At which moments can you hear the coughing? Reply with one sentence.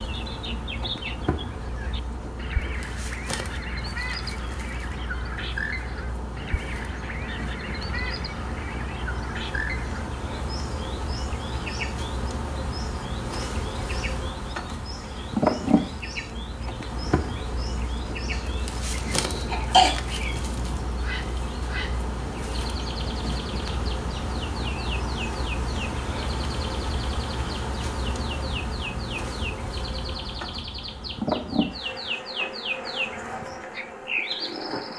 The coughing can be heard from 18.3 to 19.9 s.